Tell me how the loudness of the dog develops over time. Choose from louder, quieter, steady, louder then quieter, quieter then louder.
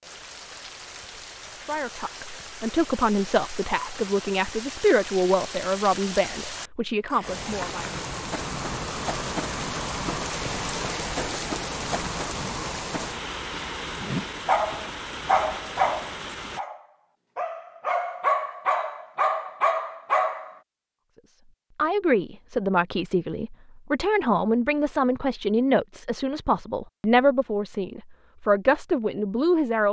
quieter then louder.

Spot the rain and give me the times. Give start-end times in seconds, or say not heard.
0.0-16.6.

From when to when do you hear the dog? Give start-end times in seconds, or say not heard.
14.4-20.6.